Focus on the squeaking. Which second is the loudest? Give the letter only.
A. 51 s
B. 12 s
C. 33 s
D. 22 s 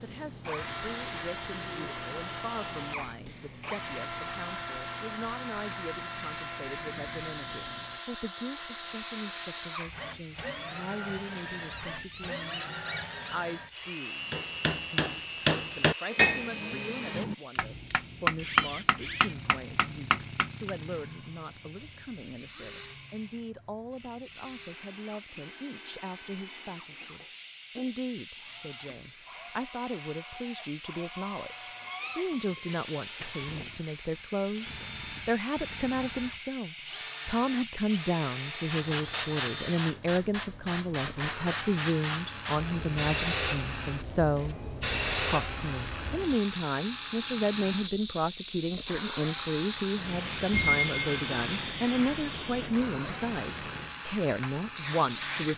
A.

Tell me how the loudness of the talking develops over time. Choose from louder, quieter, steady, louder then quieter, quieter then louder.
louder.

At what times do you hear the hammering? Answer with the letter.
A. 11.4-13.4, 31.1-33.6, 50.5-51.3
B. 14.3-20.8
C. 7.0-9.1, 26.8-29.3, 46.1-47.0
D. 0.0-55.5
B.